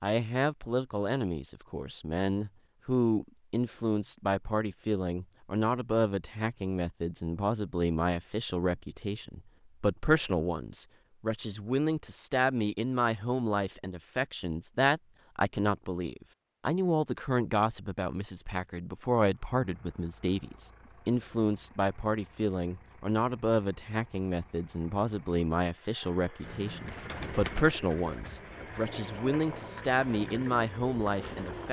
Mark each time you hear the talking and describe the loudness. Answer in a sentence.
The talking can be heard from 0.0 to 31.6 s, at a steady volume.